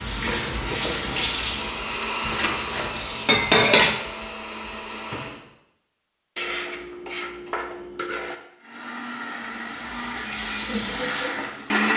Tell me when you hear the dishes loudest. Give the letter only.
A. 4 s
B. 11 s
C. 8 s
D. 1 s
A.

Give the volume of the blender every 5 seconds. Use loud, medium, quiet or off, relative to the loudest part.
medium, medium, loud.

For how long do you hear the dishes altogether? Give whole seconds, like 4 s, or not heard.
4 s.